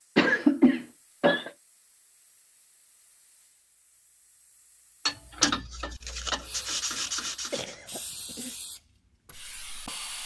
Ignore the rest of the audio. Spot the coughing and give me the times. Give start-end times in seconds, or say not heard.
0.1-1.5, 7.5-8.6.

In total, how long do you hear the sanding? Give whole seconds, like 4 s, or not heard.
3 s.